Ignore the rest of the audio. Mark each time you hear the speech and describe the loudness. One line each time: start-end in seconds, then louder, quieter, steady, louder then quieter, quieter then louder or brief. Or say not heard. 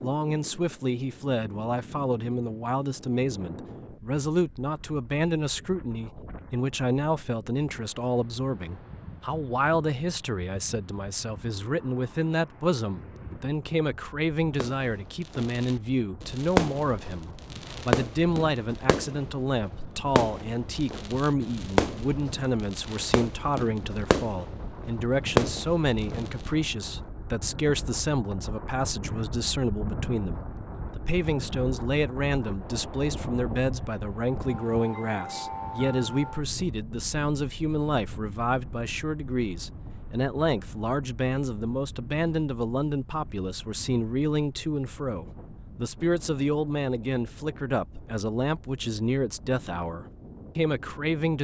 0.0-51.4 steady.